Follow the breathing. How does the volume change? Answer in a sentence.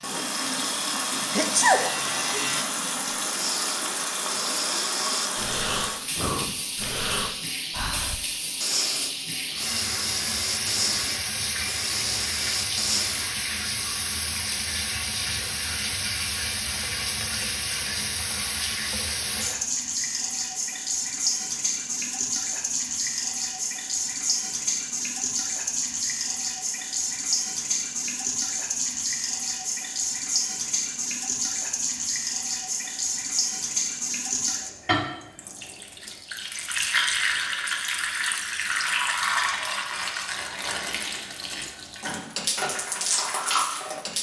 The volume of the breathing stays about the same.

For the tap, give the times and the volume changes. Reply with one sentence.
The tap can be heard from 0.0 to 44.1 s, at a steady volume.